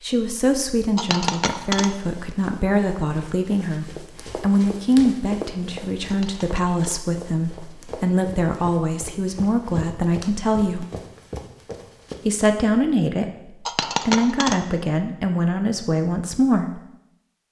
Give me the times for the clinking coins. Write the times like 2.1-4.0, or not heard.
0.9-1.9, 6.0-6.8, 13.7-14.6.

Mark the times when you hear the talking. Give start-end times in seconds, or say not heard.
0.0-10.8, 12.2-16.8.